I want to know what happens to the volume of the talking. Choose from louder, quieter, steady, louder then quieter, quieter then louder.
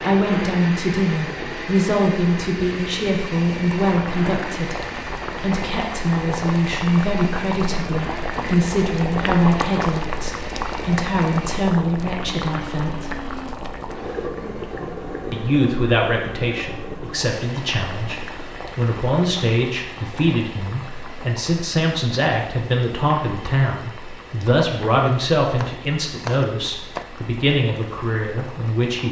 steady.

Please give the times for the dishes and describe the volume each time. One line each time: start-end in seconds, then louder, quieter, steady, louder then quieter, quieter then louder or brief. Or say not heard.
not heard.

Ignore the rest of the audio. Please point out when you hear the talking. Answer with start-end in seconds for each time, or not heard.
0.0-13.2, 15.3-29.0.